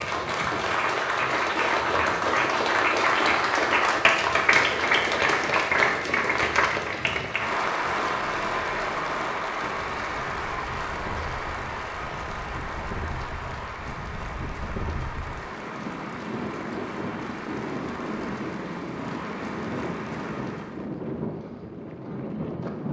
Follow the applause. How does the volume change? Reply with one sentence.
The volume of the applause goes down.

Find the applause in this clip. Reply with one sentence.
You can hear the applause from 0.0 to 20.9 s.